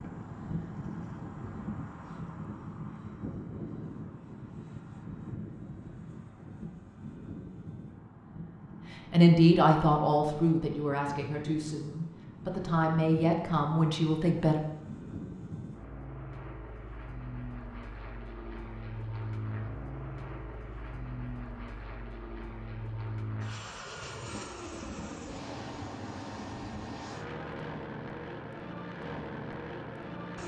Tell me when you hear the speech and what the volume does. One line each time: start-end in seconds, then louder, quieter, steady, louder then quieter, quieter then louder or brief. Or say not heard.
8.9-14.6 quieter then louder.